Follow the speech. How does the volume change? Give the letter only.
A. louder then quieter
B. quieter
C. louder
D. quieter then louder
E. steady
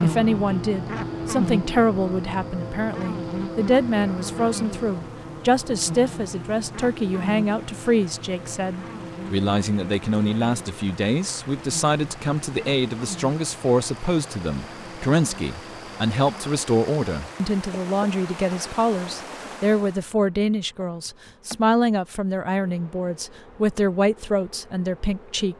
E.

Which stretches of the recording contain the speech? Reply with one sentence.
The speech can be heard from 0.0 to 25.5 s.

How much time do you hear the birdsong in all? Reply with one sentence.
You can't hear the birdsong here.